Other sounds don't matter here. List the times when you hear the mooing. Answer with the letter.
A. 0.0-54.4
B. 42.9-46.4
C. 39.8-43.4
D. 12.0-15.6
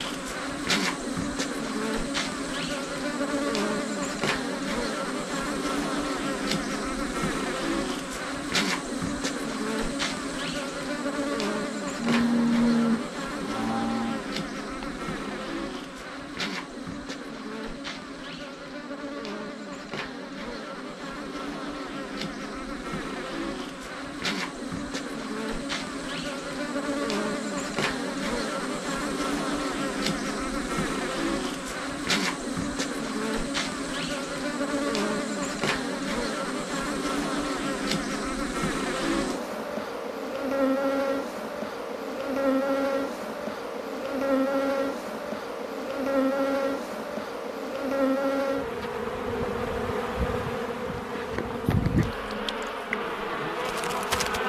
D.